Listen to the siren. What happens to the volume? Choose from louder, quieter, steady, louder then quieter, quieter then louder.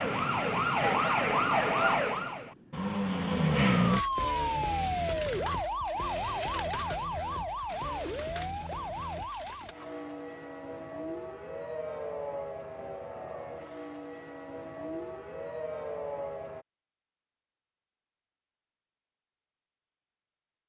quieter.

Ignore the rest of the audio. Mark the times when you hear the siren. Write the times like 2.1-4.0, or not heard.
0.0-16.6.